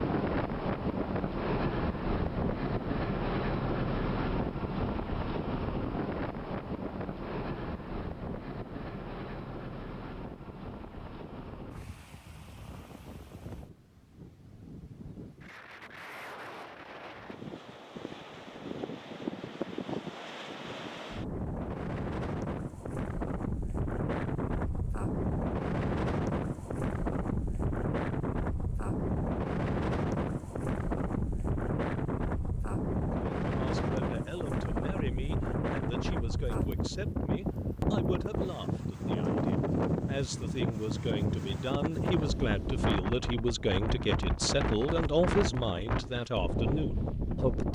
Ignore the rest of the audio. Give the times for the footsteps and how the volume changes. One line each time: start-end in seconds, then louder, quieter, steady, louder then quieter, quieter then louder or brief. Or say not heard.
not heard.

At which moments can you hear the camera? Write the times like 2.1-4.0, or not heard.
not heard.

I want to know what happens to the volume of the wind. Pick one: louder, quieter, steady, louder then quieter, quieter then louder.
quieter then louder.